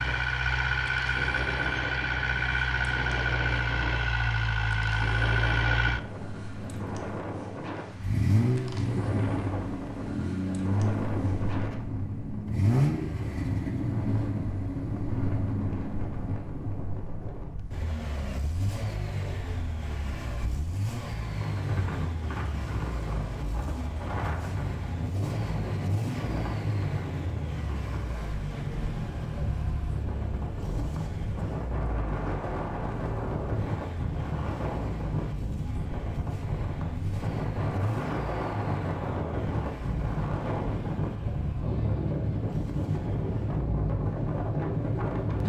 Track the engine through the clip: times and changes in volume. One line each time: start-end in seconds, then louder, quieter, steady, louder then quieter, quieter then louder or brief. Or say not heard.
0.0-45.4 quieter.